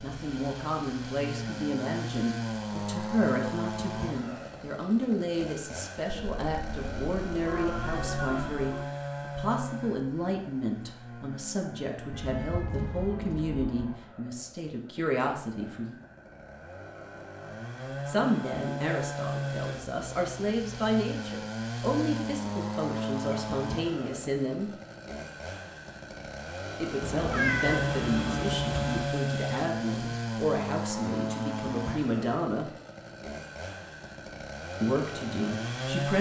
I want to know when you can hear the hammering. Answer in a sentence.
The hammering can't be heard in this clip.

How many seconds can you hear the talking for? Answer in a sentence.
The talking can be heard for 30 seconds in total.